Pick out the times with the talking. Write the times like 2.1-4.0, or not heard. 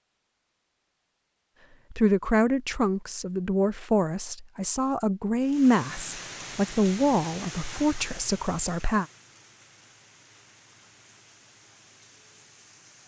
1.9-9.1.